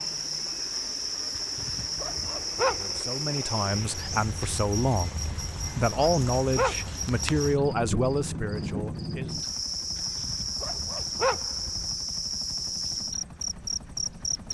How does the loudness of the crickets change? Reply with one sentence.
The volume of the crickets stays about the same.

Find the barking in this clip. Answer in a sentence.
The barking can be heard from 1.4 to 3.0 s, from 5.3 to 7.0 s and from 9.9 to 11.9 s.